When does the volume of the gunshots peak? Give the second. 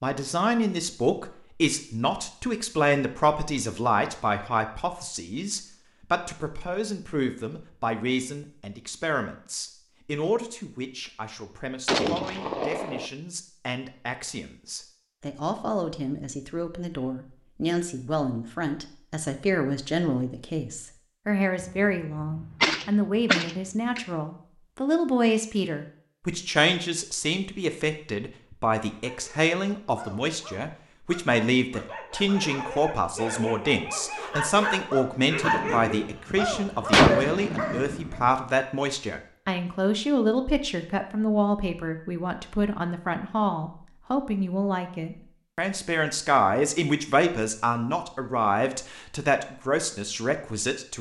37 s.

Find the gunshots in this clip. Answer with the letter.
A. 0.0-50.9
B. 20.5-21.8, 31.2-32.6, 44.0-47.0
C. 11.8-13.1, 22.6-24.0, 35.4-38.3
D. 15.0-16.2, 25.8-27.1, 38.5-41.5
C.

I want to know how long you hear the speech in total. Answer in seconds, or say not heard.
51 s.